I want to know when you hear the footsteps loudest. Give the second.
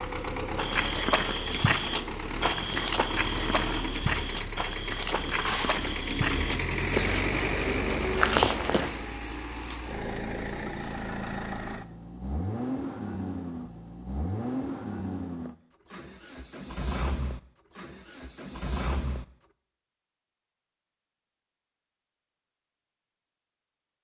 8 s.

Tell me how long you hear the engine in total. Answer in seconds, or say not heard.
19 s.